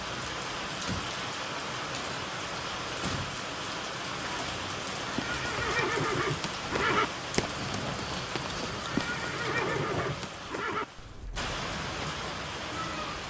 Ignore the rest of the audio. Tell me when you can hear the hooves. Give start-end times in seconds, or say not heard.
5.0-11.6.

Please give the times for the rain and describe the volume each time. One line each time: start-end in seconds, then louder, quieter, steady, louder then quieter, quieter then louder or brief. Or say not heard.
0.0-13.2 steady.